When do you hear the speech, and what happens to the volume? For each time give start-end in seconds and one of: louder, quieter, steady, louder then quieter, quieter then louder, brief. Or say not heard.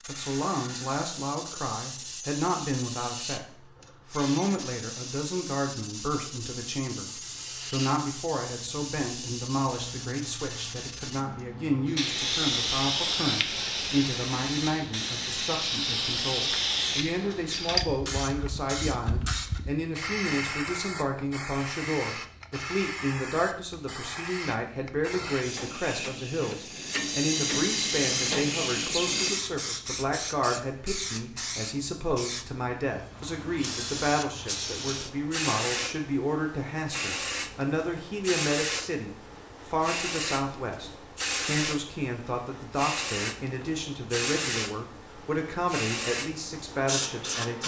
0.1-47.6 steady.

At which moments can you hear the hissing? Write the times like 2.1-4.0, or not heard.
0.0-47.6.